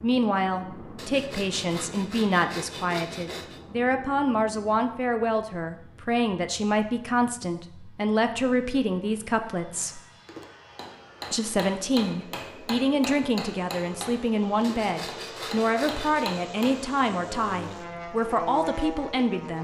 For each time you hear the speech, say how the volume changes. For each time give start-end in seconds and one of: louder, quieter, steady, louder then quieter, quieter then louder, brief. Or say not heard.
0.0-10.0 steady
11.3-19.5 steady.